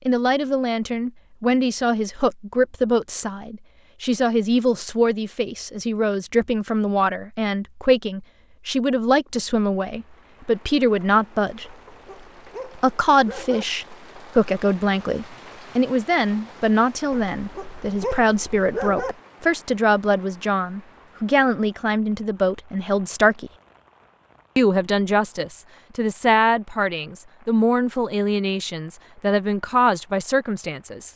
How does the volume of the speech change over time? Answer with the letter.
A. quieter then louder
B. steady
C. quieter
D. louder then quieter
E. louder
B.